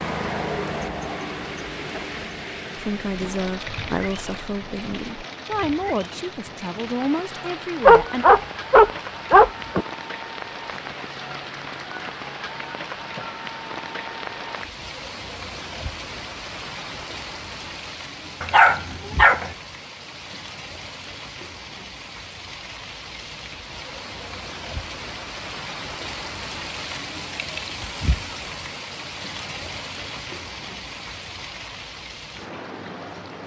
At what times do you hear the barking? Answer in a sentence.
The barking can be heard from 7.8 to 9.8 s and from 18.4 to 19.5 s.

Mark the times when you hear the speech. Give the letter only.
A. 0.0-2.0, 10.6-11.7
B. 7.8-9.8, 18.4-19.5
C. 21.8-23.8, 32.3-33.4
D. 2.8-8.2
D.